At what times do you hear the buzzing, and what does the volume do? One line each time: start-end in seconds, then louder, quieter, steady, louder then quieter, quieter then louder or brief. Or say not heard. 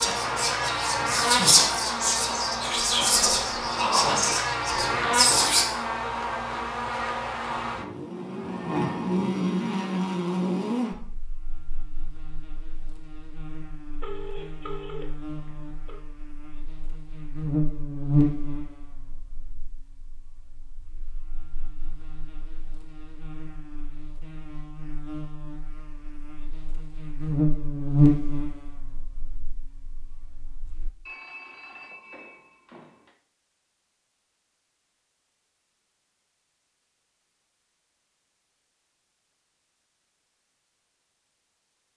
0.0-30.9 quieter then louder.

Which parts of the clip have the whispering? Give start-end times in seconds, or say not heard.
0.0-5.7.